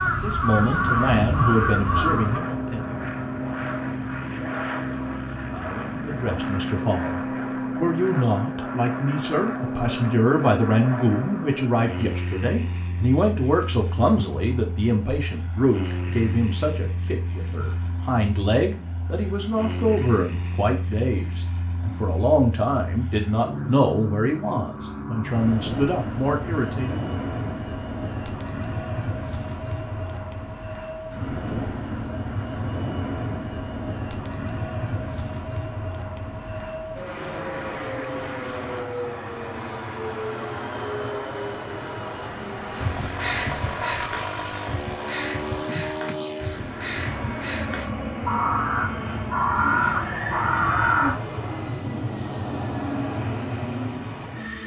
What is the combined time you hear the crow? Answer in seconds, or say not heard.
11 s.